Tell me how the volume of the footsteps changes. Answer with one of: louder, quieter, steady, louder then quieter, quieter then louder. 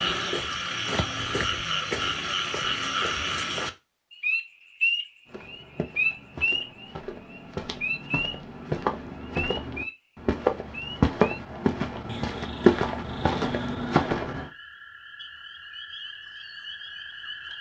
louder.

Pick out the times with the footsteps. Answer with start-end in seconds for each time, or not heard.
5.2-14.4.